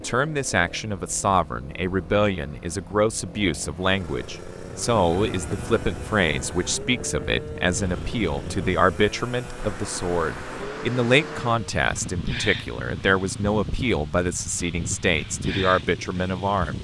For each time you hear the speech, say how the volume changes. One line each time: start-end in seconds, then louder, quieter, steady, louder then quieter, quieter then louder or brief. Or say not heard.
0.0-16.7 steady.